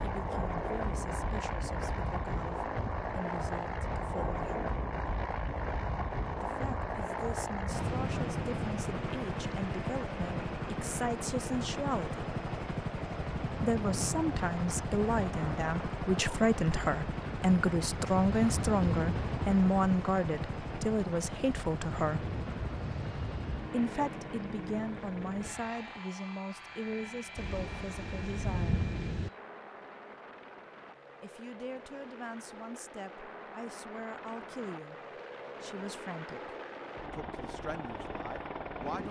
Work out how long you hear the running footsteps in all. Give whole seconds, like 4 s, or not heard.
not heard.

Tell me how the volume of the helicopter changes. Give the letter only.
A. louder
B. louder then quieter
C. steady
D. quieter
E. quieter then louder
D.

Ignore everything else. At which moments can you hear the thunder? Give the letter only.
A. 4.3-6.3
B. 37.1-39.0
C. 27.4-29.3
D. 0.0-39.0
C.